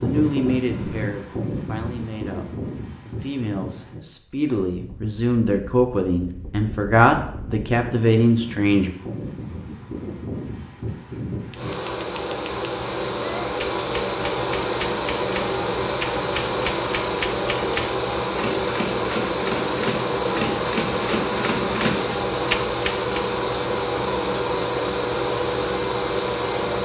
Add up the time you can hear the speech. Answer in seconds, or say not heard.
9 s.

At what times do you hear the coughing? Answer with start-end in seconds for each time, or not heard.
not heard.